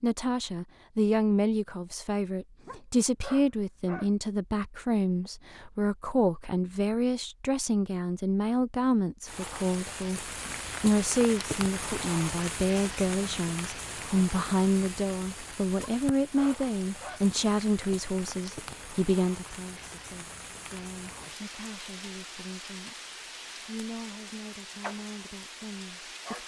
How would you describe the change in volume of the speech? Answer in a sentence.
The volume of the speech goes down.